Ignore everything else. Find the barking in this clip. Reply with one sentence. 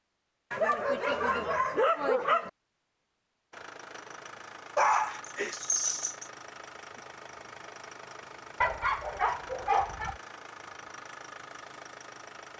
The barking can be heard from 0.5 to 2.5 s, from 4.8 to 6.2 s and from 8.6 to 10.2 s.